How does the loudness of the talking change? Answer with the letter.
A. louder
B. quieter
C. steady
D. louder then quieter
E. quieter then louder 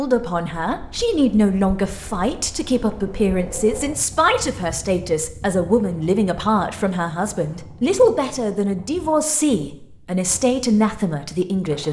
C.